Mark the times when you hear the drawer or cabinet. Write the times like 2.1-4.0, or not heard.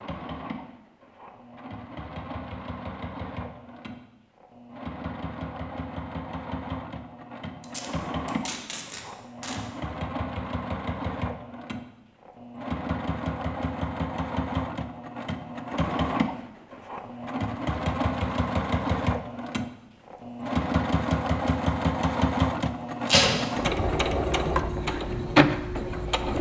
not heard.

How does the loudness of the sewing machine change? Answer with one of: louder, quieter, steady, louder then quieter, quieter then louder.
louder.